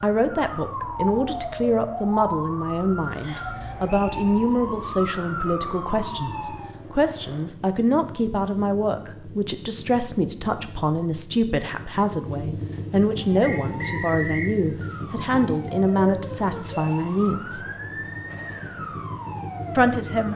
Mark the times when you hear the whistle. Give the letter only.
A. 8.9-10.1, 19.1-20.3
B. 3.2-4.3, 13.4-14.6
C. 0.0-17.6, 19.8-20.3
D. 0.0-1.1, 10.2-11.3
B.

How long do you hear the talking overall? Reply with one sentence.
The talking can be heard for 18 seconds in total.